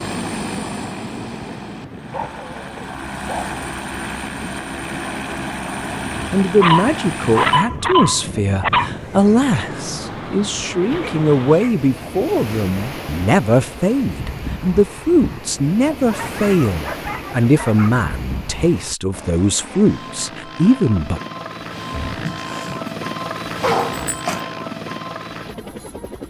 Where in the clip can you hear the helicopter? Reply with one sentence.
The helicopter can be heard from 0.0 to 7.6 s and from 19.1 to 26.2 s.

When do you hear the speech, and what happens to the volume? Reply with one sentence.
You can hear the speech from 6.3 to 21.2 s, at a steady volume.